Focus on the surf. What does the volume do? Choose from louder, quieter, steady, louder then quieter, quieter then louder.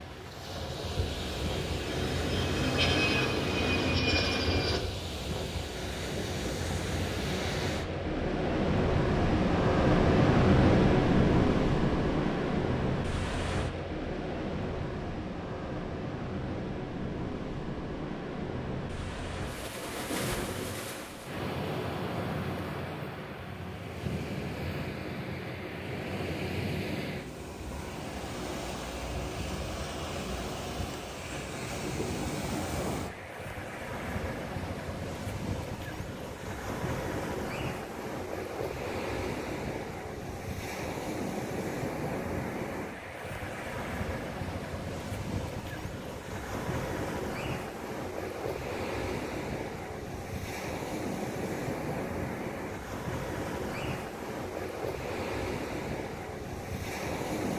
quieter.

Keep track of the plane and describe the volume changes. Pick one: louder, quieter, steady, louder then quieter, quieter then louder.
louder.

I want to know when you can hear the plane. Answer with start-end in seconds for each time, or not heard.
0.0-4.8.